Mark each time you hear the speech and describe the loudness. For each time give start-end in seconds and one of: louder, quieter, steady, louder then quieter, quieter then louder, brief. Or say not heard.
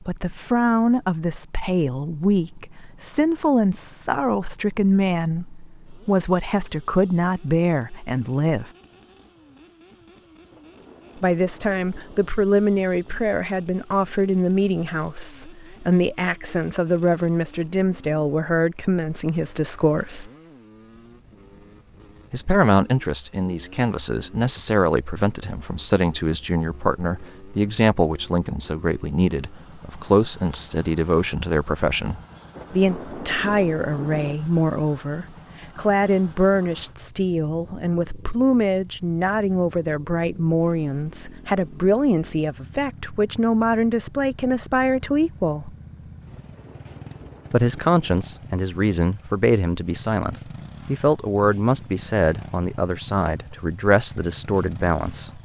0.1-8.7 steady
11.2-20.3 steady
22.3-45.8 steady
47.5-55.4 steady.